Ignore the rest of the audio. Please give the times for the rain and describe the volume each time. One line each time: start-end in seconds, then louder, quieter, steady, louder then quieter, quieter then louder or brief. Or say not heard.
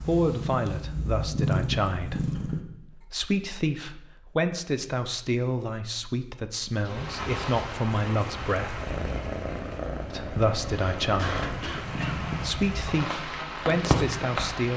6.7-14.7 quieter then louder.